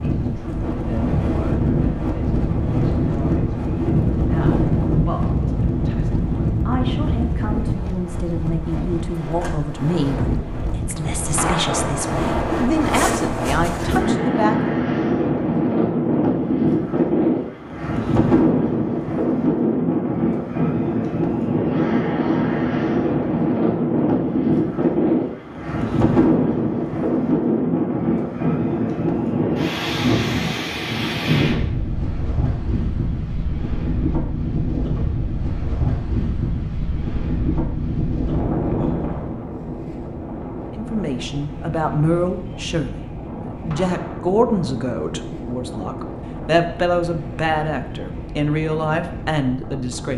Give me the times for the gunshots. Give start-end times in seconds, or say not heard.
11.3-11.9, 43.7-44.3.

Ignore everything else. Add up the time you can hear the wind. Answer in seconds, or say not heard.
50 s.